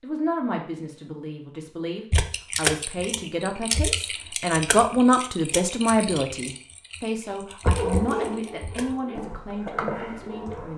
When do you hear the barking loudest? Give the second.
8 s.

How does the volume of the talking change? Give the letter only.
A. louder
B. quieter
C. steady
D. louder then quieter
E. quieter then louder
D.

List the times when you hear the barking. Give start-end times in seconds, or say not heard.
7.8-10.7.